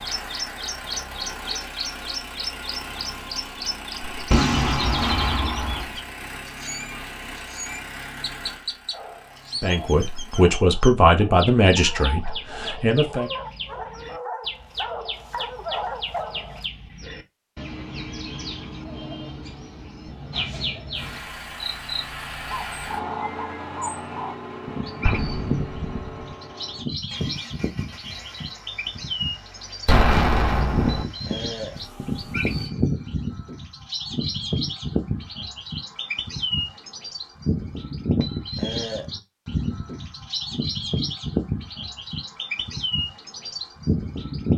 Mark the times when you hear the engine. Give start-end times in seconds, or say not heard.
0.0-10.6, 20.9-32.7.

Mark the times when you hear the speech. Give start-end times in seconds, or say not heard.
9.6-13.3.